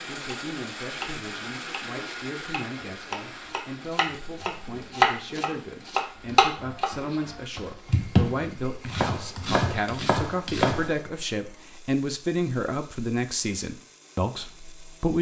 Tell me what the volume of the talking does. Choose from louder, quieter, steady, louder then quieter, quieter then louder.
louder.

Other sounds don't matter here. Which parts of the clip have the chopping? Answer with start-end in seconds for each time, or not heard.
0.3-11.1.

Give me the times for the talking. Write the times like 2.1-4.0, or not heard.
0.1-15.1.